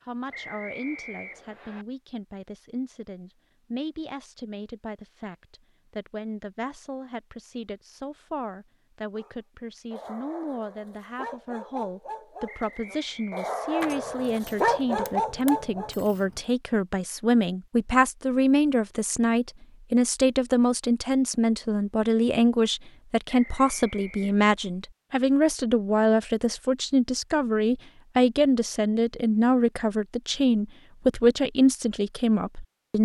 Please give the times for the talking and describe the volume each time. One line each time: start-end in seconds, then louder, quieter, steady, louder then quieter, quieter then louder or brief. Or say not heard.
0.1-33.0 louder.